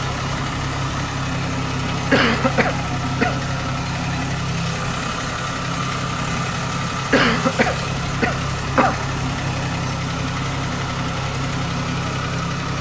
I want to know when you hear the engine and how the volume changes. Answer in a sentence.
You can hear the engine from 0.0 to 12.7 s, at a steady volume.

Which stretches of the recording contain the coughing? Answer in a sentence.
The coughing can be heard from 2.1 to 3.4 s and from 7.1 to 9.1 s.